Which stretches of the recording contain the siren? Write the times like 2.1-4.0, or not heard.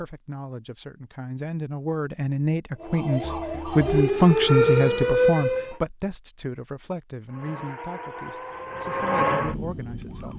2.8-5.8, 7.3-10.3.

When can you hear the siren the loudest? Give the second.
5 s.